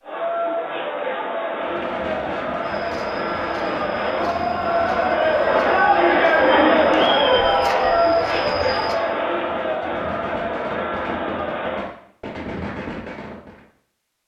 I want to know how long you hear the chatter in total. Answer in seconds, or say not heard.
12 s.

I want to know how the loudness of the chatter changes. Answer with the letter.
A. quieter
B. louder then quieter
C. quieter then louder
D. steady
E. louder
B.